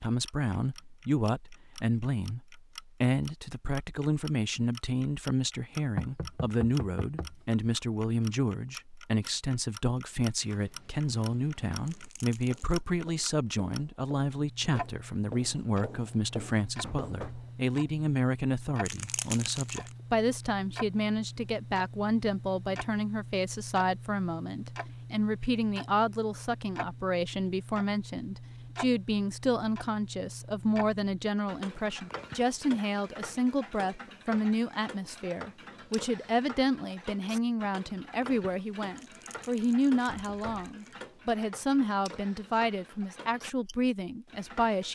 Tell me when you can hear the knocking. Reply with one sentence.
The knocking can be heard from 6.0 to 7.3 s, from 16.8 to 17.5 s and from 40.0 to 40.8 s.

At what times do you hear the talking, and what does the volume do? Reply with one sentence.
You can hear the talking from 0.0 to 44.9 s, at a steady volume.